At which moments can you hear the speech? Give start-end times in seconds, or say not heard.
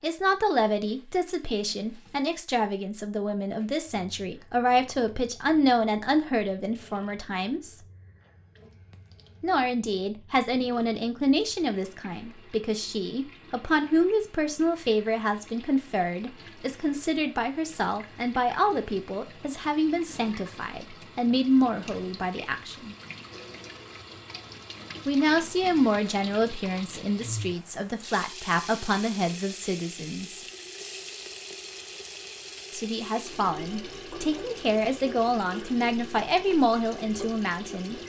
0.0-7.8, 9.4-22.9, 25.1-30.4, 32.7-38.0.